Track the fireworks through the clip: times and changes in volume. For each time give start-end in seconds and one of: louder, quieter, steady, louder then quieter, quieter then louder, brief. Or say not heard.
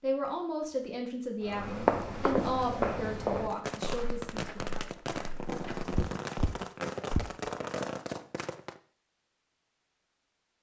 3.5-8.8 steady.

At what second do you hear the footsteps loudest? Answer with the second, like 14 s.
2 s.